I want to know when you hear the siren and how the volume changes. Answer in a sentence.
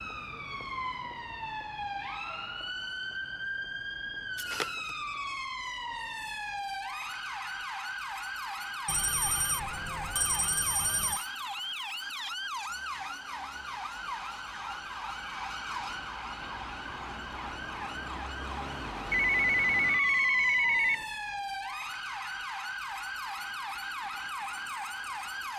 You can hear the siren from 0.0 to 25.5 s, at a steady volume.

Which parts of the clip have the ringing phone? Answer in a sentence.
You can hear the ringing phone from 4.3 to 5.3 s, from 8.8 to 11.2 s and from 19.1 to 21.1 s.